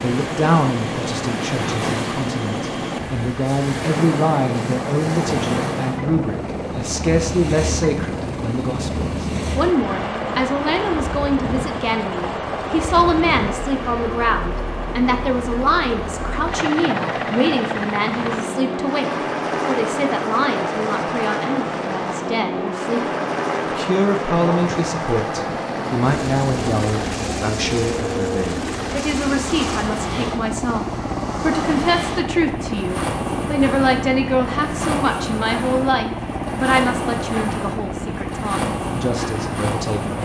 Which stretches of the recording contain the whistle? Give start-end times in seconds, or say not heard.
not heard.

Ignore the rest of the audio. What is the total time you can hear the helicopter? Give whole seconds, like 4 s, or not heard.
40 s.